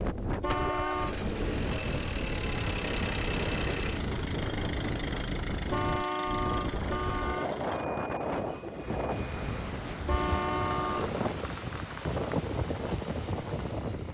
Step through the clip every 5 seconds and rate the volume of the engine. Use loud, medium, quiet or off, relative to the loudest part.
loud, medium, medium.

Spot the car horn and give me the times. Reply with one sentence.
The car horn can be heard from 0.4 to 1.1 s, from 5.7 to 7.5 s and from 10.1 to 11.2 s.